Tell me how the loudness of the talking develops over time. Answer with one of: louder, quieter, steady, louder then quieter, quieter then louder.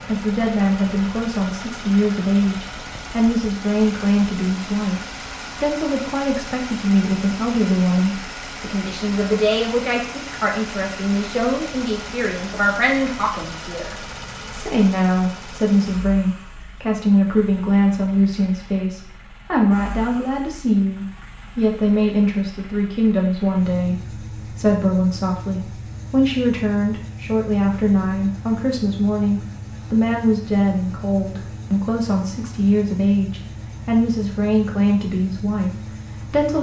steady.